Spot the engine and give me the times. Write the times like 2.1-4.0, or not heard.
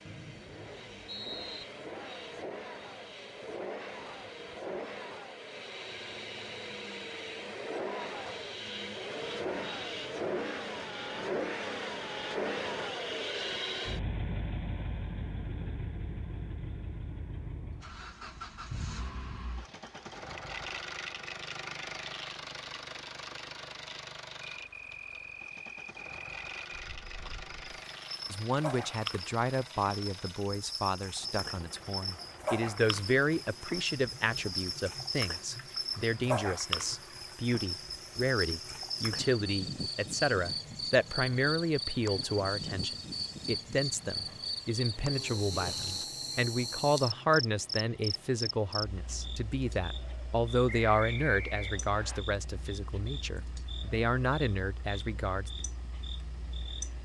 0.0-57.0.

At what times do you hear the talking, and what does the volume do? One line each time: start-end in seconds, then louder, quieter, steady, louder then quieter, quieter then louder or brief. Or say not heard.
28.3-55.5 steady.